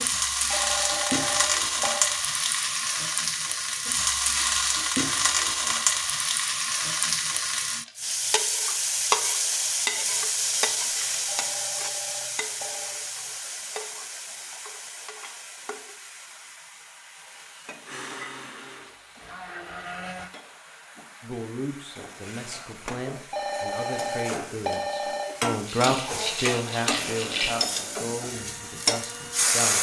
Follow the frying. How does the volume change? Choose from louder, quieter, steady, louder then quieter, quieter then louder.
quieter then louder.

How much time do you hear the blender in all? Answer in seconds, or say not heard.
6 s.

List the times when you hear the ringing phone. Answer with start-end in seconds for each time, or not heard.
0.5-2.0, 11.2-13.1, 23.3-25.4.